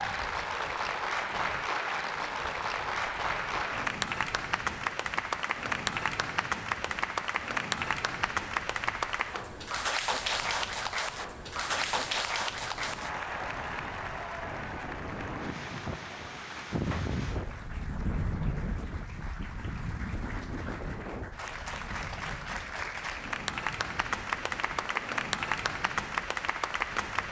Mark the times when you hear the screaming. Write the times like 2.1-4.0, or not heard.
not heard.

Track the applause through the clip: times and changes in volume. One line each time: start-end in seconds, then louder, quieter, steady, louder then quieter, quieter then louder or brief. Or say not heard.
0.0-27.2 quieter then louder.